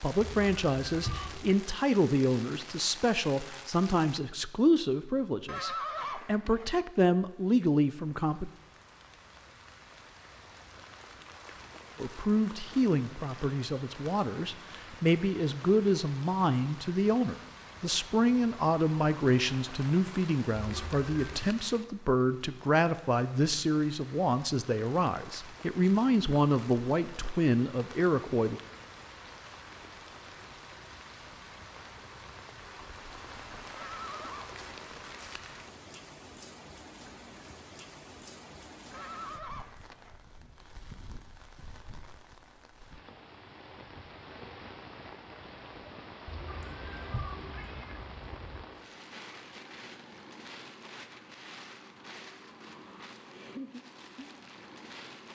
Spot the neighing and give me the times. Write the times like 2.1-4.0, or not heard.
5.5-6.8, 33.8-34.6, 38.9-40.2.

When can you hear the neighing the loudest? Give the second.
6 s.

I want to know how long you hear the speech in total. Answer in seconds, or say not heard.
25 s.